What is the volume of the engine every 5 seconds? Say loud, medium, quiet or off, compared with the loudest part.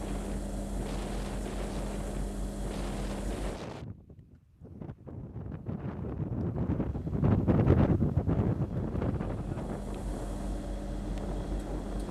loud, medium, loud.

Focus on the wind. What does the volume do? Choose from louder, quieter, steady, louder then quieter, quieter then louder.
louder then quieter.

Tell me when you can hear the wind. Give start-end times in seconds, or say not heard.
0.0-12.0.